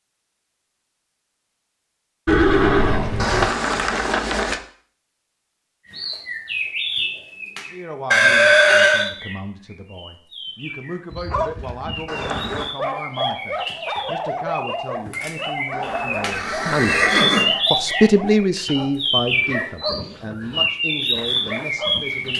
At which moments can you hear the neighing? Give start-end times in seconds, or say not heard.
2.2-3.5, 8.1-9.1, 16.3-17.6.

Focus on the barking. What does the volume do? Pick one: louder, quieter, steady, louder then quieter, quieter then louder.
quieter.